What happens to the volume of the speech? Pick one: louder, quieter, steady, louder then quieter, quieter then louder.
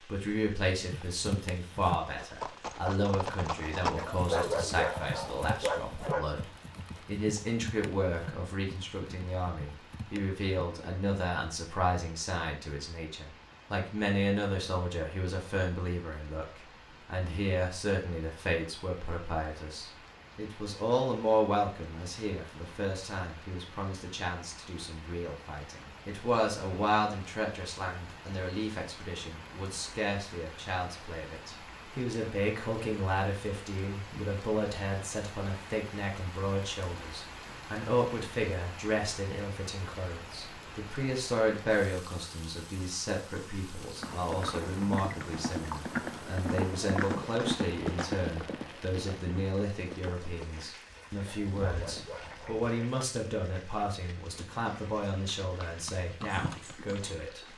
steady.